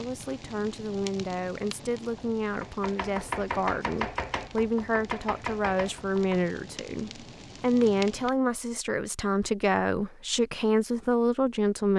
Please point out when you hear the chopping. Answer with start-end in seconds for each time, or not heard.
2.0-6.5.